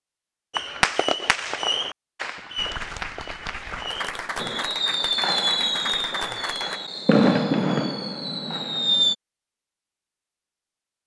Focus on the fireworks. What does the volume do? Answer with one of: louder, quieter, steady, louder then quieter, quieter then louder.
quieter then louder.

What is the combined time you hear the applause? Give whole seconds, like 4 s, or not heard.
4 s.